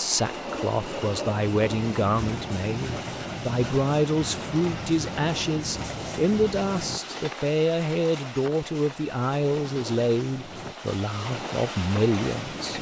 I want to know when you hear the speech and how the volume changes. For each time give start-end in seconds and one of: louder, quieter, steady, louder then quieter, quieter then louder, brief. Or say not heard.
0.0-12.7 steady.